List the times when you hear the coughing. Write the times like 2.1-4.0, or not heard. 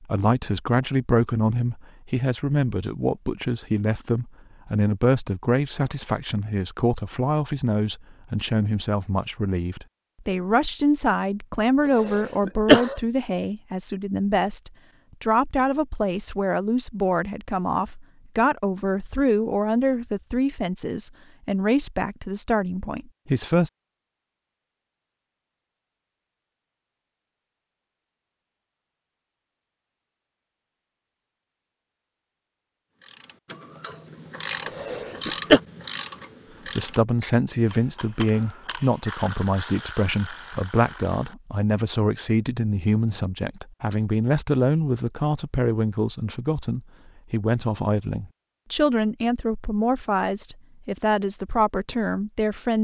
12.1-12.9, 34.6-35.6.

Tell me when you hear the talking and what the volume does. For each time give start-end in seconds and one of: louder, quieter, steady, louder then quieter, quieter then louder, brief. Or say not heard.
0.0-23.7 steady
36.6-52.8 steady.